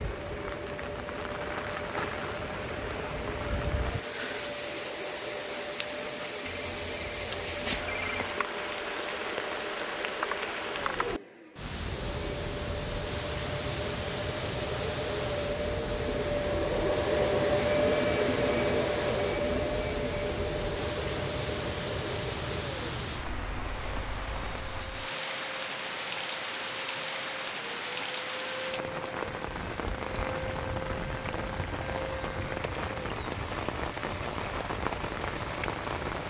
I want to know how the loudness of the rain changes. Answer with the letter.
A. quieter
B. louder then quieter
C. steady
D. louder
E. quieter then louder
C.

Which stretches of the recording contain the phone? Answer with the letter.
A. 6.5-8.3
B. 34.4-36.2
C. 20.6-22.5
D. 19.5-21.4
A.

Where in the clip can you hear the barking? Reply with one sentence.
The barking can't be heard in this clip.